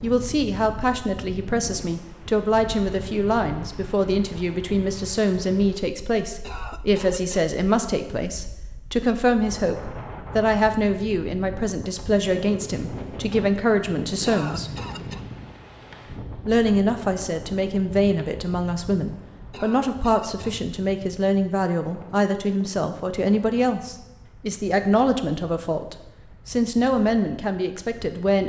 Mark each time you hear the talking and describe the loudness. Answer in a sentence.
The talking can be heard from 0.0 to 14.7 s, at a steady volume; and from 16.4 to 28.4 s, at a steady volume.